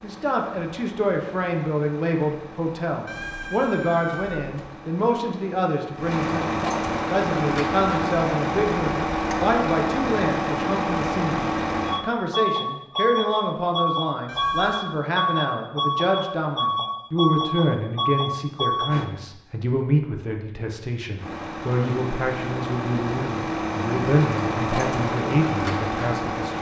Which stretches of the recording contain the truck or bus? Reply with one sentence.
You can hear the truck or bus from 0.0 to 19.1 s and from 21.1 to 26.5 s.